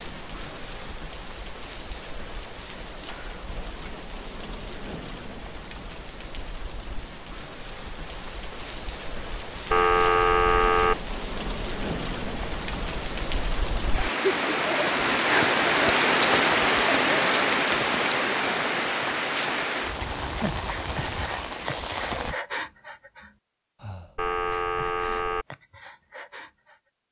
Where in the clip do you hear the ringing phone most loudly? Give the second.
10 s.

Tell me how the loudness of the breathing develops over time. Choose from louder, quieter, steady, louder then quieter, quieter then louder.
quieter.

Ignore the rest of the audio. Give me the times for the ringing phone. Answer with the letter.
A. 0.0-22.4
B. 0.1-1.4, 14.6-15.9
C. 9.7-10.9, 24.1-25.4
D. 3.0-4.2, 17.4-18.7
C.